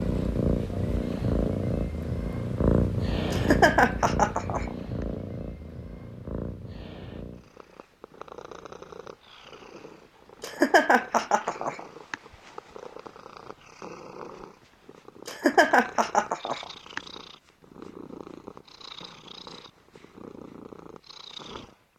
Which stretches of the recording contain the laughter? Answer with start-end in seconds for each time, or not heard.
3.3-4.7, 10.4-12.2, 15.2-17.0.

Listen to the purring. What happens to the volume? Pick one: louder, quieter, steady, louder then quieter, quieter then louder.
quieter.